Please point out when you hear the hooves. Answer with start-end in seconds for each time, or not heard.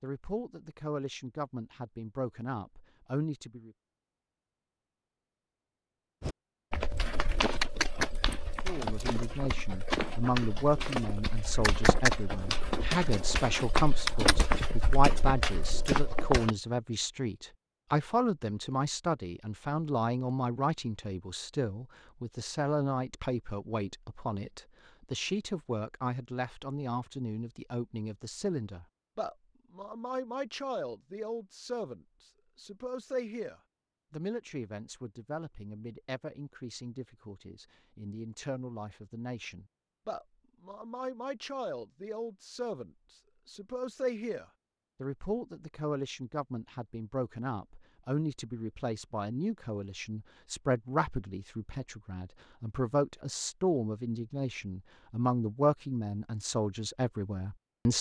6.2-16.5.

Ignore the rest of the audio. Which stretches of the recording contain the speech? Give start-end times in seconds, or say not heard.
0.0-3.7, 8.7-57.9.